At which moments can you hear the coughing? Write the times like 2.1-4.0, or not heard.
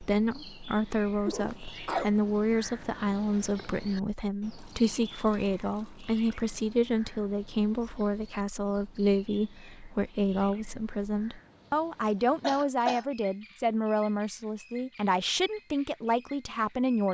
1.2-2.1, 12.4-13.1.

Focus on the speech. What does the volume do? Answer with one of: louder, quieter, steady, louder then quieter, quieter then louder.
steady.